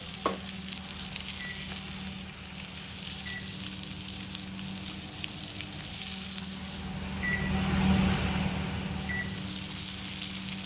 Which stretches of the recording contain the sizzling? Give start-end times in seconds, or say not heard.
0.0-10.6.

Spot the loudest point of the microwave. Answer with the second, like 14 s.
8 s.